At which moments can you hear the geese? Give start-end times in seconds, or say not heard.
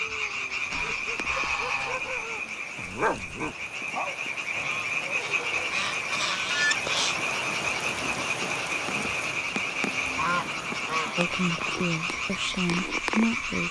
0.7-2.1, 4.6-7.2, 10.2-11.8.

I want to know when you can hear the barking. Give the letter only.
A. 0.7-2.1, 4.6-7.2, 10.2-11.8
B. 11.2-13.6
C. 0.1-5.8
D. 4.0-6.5
C.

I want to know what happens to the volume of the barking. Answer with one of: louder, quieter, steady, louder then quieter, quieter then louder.
louder then quieter.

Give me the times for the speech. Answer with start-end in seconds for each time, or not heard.
11.2-13.6.